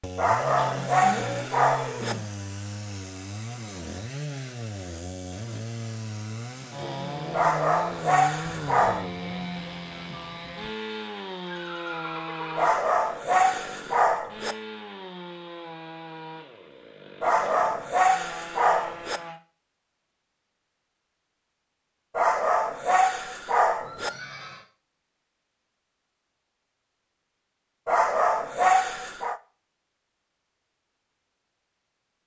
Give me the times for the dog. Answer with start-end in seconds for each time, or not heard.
0.1-2.1, 7.3-9.1, 12.6-14.6, 17.2-19.2, 22.1-24.1, 27.9-29.4.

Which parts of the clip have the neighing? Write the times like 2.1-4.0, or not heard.
0.6-2.3, 11.4-12.8, 23.8-24.6.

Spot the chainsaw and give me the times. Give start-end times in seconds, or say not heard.
0.0-19.4.